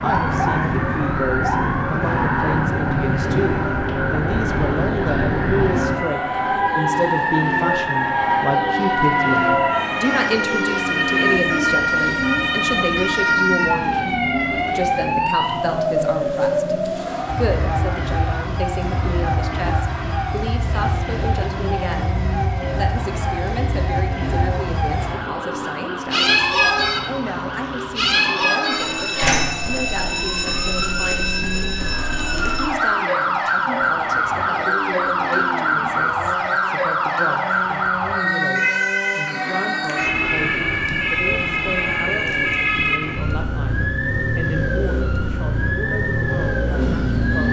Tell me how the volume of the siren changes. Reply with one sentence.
The volume of the siren stays about the same.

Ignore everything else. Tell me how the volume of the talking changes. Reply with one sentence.
The volume of the talking goes down.